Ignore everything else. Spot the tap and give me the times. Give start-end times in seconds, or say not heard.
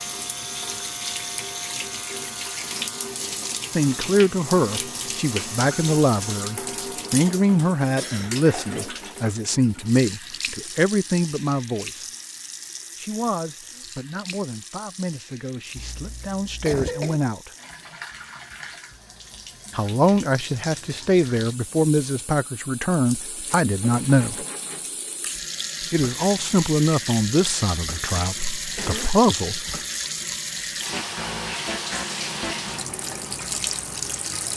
0.0-34.5.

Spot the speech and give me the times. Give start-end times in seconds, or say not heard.
3.8-12.1, 12.9-17.5, 19.8-24.4, 25.8-29.8.